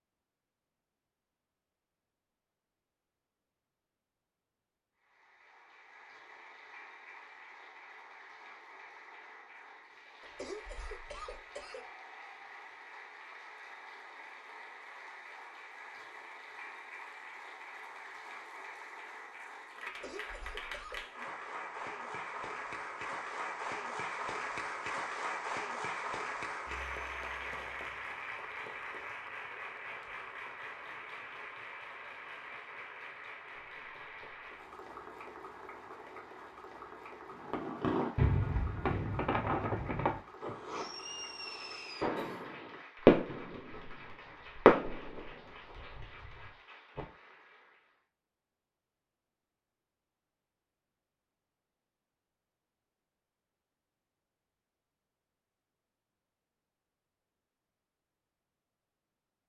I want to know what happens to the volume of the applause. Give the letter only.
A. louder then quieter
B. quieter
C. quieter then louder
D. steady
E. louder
A.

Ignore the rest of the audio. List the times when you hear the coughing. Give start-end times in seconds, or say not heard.
10.2-11.8, 19.9-21.1, 42.0-42.5.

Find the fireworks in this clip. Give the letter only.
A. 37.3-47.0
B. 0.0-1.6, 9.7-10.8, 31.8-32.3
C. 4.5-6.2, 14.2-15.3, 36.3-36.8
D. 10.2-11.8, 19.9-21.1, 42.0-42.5
A.